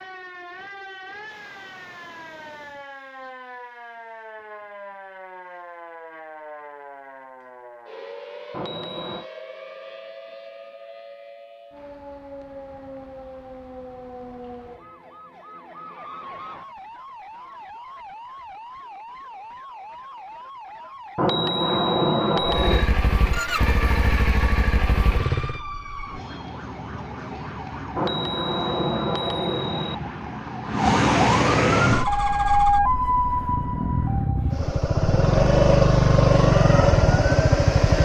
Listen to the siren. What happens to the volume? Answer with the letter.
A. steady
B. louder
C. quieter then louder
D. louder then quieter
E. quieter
B.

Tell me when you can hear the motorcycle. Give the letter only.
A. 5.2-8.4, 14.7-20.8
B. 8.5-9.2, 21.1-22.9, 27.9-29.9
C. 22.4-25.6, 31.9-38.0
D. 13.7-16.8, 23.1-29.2
C.